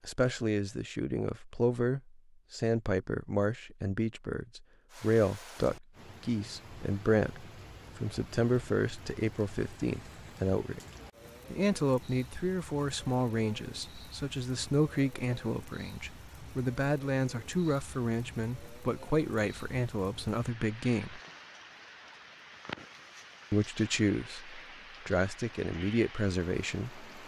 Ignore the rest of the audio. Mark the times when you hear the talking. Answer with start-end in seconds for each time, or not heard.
0.0-10.8, 11.5-21.2, 23.5-27.1.